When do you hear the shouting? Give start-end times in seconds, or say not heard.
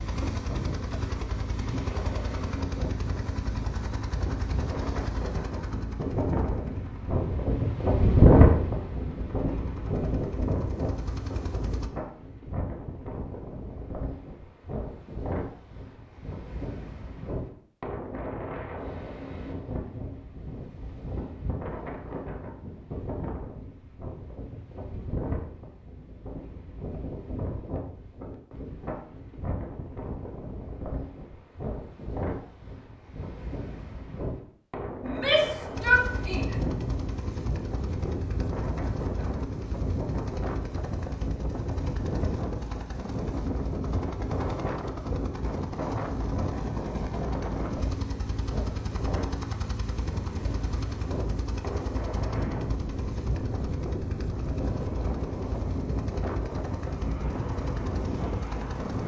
35.0-36.5.